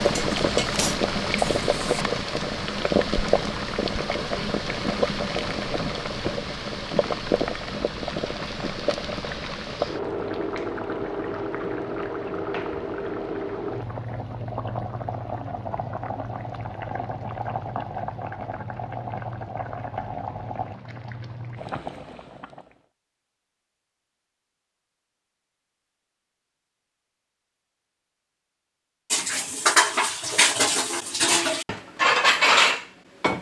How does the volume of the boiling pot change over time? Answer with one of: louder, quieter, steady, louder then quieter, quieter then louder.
quieter.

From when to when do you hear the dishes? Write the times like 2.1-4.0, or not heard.
0.0-2.0, 29.1-33.3.